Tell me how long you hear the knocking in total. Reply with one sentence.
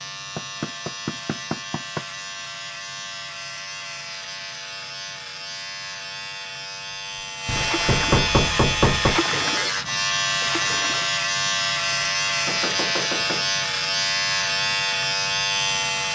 The knocking can be heard for 5 seconds in total.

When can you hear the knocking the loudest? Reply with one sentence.
The volume of the knocking peaks at 8 seconds.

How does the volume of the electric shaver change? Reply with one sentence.
The volume of the electric shaver goes up.